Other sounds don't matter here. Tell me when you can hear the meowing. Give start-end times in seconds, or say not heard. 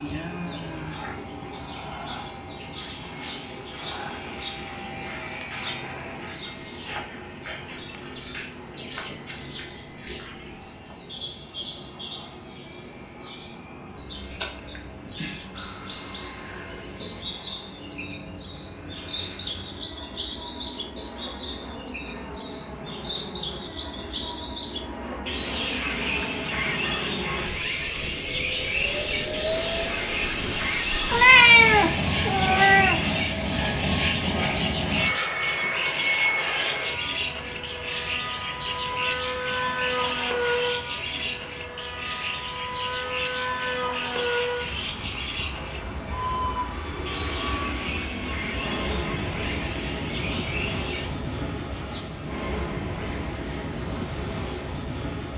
31.1-33.0.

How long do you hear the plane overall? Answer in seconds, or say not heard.
55 s.